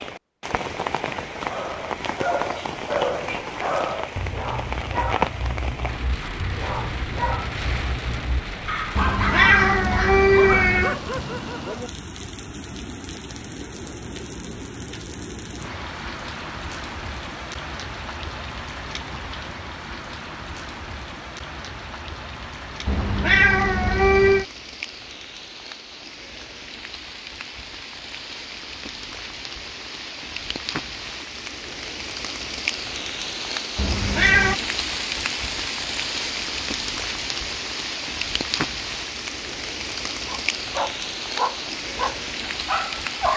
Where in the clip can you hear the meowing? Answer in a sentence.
The meowing can be heard from 8.9 to 10.9 s, from 22.9 to 24.4 s and from 33.8 to 34.6 s.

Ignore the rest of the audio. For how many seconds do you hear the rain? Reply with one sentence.
You can hear the rain for 43 seconds altogether.